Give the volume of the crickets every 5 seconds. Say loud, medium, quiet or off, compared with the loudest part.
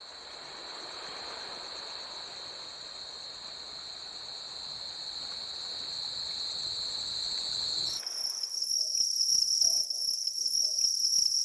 quiet, loud, loud.